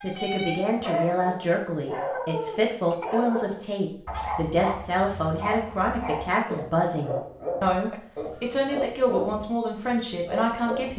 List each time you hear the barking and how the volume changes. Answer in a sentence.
The barking can be heard from 0.0 to 10.9 s, at a steady volume.